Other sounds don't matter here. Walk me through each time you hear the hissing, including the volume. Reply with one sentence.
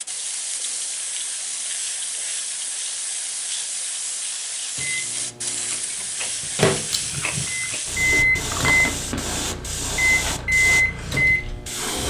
You can hear the hissing from 0.0 to 12.0 s, at a steady volume.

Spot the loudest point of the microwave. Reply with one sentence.
The volume of the microwave peaks at 11 seconds.